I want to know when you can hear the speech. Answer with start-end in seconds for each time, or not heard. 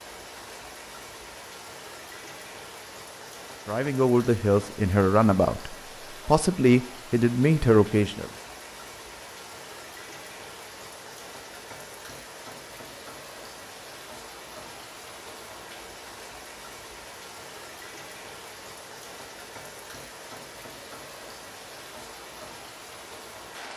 3.6-8.3.